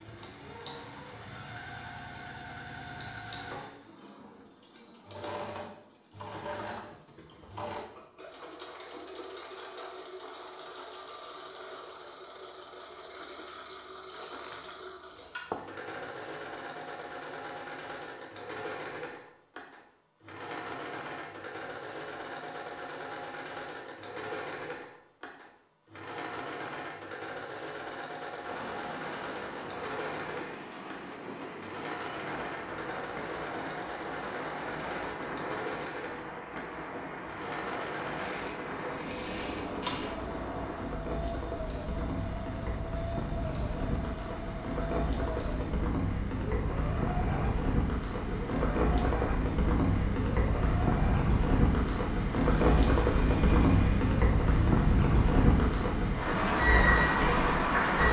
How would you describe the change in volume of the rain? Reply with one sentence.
The volume of the rain goes up.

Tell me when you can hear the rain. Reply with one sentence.
The rain can be heard from 28.4 to 58.0 s.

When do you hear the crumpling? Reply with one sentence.
You can hear the crumpling from 14.2 to 15.7 s.